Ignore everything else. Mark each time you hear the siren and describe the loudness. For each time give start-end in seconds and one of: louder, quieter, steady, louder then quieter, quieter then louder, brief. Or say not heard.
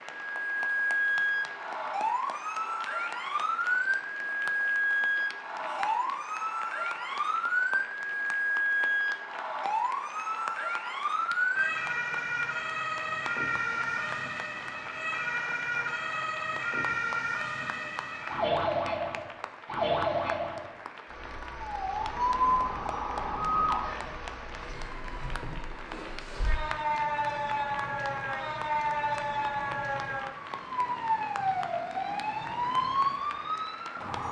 0.1-34.2 steady.